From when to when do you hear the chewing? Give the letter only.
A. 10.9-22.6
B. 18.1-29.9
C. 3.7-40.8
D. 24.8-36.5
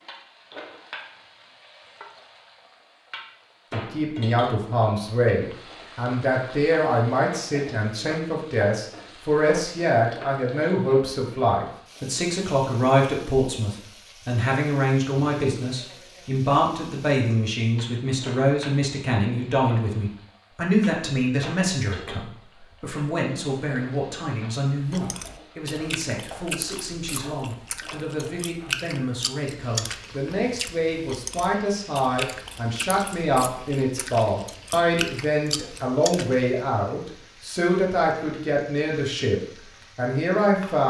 D.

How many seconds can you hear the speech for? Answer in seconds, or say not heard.
37 s.